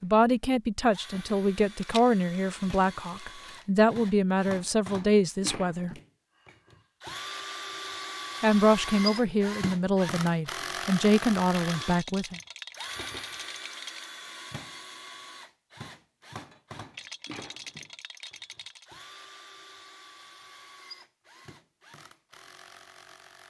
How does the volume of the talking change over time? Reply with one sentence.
The volume of the talking stays about the same.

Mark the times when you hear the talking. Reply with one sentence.
The talking can be heard from 0.0 to 5.9 s and from 8.4 to 12.4 s.